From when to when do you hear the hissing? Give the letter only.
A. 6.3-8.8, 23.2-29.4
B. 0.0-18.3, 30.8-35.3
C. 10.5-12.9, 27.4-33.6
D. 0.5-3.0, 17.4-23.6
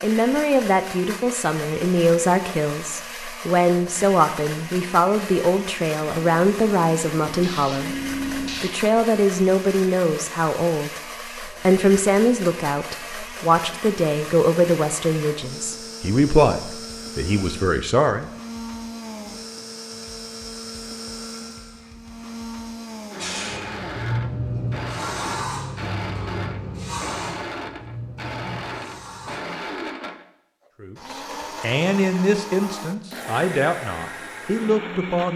A.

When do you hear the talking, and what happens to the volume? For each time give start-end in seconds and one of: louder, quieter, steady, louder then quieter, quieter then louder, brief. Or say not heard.
0.0-18.3 steady
30.8-35.3 quieter then louder.